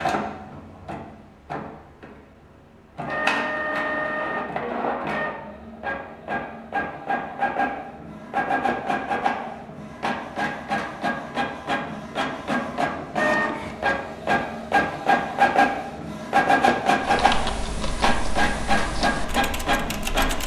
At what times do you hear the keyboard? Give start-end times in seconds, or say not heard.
17.0-20.4.